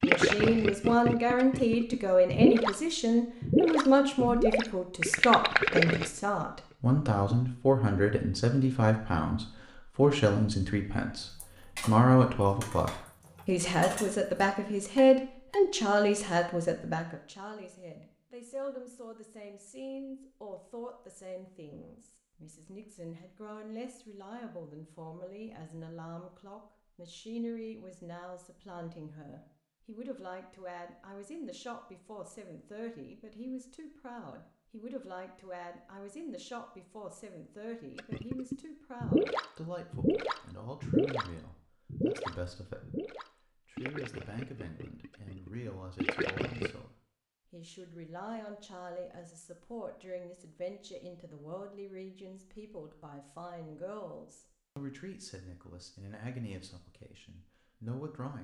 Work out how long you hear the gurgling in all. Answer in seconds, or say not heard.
16 s.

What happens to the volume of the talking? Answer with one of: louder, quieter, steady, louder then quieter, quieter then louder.
quieter.